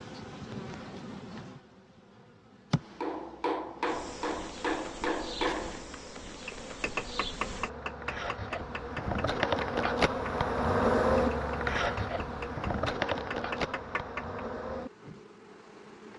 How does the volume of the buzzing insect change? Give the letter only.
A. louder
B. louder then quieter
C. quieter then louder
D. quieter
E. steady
B.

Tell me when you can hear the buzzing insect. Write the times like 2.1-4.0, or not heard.
0.0-16.1.